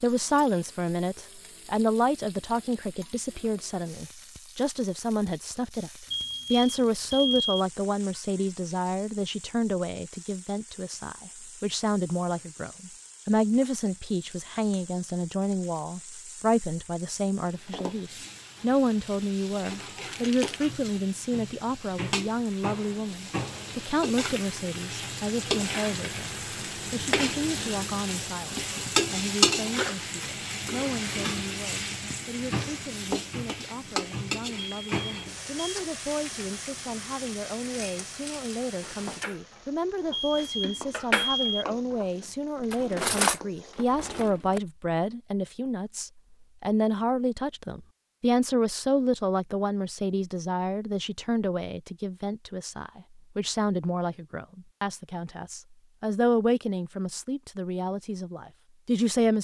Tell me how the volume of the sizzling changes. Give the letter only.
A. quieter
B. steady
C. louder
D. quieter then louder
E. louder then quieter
E.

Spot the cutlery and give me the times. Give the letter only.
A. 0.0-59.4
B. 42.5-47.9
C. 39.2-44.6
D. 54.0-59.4
C.